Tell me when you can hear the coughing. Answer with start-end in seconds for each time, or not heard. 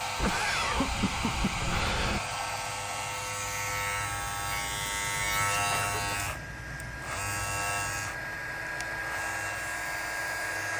0.1-2.2, 5.7-6.3.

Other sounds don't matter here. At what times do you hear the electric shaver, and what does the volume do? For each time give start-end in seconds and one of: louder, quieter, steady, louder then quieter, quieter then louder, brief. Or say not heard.
0.0-10.7 louder then quieter.